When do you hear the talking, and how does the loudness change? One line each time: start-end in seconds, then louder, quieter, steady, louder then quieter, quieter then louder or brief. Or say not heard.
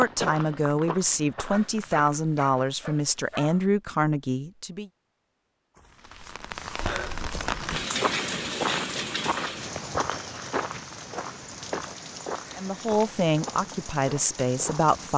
0.0-4.9 steady
12.6-15.1 brief.